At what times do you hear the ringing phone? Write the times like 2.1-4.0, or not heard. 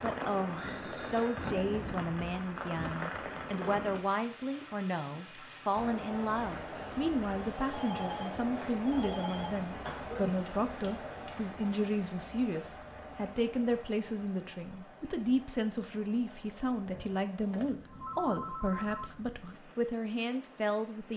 0.6-1.6, 7.7-9.6, 17.5-19.1.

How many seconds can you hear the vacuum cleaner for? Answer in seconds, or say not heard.
not heard.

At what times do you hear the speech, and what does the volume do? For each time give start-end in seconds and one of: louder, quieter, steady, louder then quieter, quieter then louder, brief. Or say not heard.
0.0-21.1 steady.